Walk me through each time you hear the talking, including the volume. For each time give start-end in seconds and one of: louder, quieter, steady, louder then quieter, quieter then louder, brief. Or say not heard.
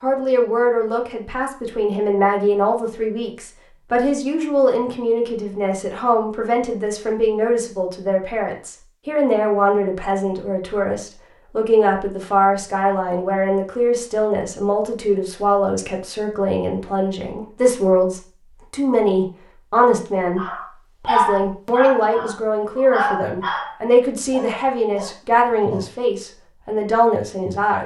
0.0-27.8 steady.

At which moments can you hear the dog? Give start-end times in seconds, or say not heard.
20.4-25.9.